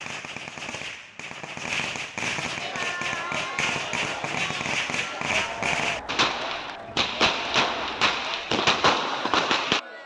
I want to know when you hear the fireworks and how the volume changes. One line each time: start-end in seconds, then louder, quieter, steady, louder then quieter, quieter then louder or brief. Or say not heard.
0.0-9.8 louder.